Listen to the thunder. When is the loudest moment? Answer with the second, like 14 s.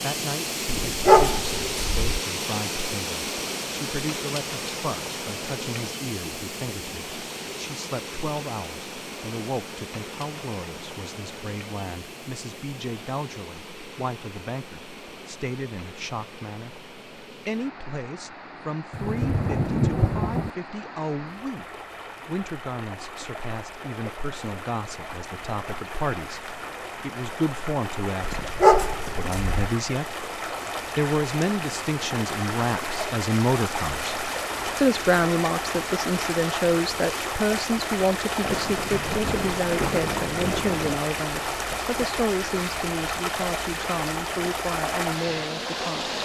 20 s.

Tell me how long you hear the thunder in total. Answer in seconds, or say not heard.
4 s.